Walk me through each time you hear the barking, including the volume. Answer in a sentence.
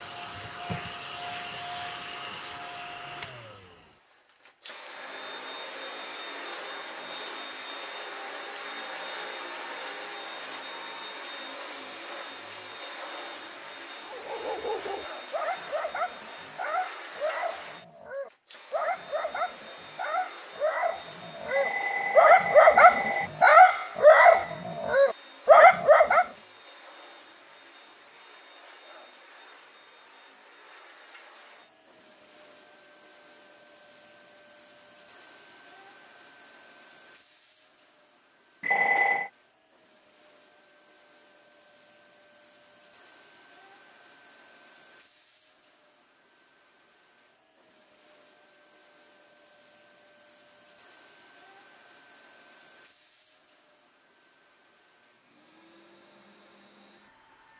The barking can be heard from 14.1 to 26.2 s, getting louder.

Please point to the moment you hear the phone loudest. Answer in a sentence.
The loudest moment of the phone is at 39 seconds.